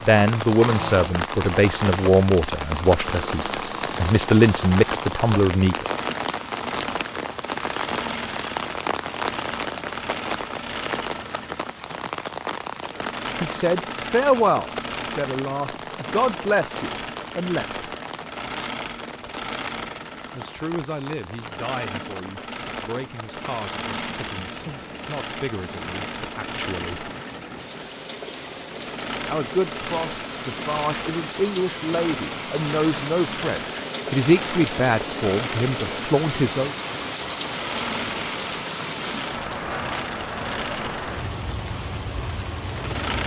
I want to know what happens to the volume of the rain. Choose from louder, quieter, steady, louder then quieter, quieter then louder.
quieter then louder.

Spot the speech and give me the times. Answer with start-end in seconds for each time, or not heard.
0.0-6.0, 13.4-17.8, 20.3-27.1, 29.2-36.7.